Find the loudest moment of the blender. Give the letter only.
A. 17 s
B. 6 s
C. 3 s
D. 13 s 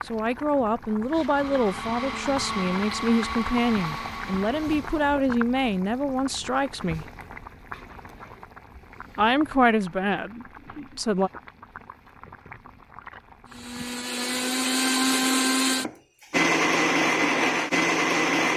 A.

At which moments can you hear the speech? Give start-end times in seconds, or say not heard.
0.1-7.0, 9.2-11.3.